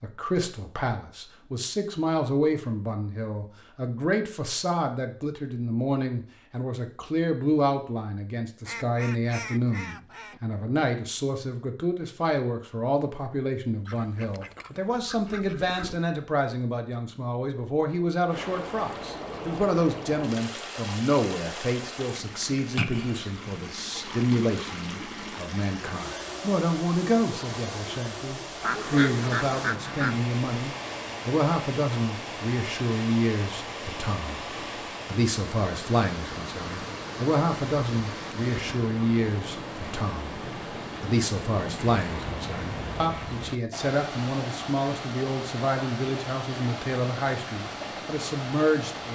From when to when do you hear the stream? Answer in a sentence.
You can hear the stream from 18.2 to 49.1 s.